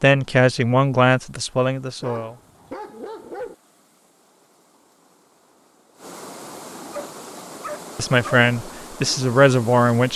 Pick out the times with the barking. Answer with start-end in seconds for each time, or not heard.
2.0-3.5, 6.9-8.5.